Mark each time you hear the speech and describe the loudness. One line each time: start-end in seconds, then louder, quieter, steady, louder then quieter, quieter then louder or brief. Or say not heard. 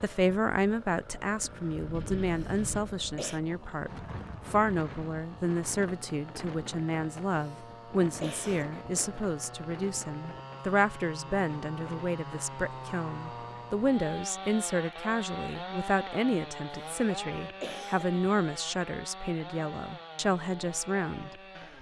0.0-21.3 steady.